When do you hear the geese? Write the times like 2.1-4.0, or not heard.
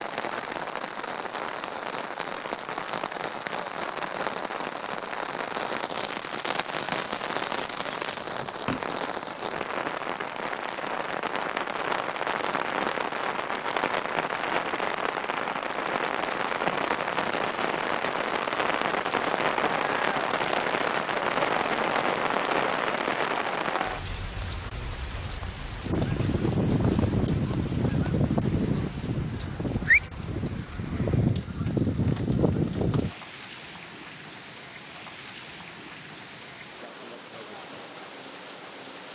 25.8-33.1.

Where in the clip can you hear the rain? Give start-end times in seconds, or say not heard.
0.0-39.0.